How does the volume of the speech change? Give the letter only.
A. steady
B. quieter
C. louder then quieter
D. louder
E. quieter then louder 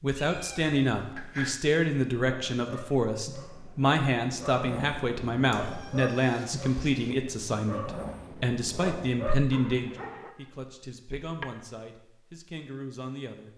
B.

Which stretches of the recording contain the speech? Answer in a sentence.
You can hear the speech from 0.0 to 13.5 s.